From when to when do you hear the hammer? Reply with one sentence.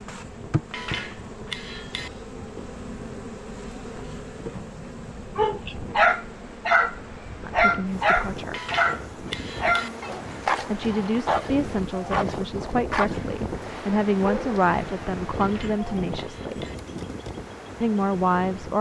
You can hear the hammer from 0.7 to 2.1 s, from 8.5 to 9.9 s and from 15.3 to 16.8 s.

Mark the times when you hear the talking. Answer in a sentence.
The talking can be heard from 7.5 to 8.6 s, from 10.6 to 16.6 s and from 17.8 to 18.7 s.